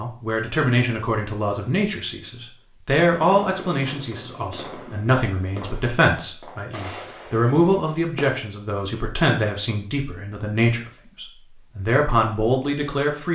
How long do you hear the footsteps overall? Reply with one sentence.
You can't hear the footsteps here.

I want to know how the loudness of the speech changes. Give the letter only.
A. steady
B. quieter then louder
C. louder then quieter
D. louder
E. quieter
A.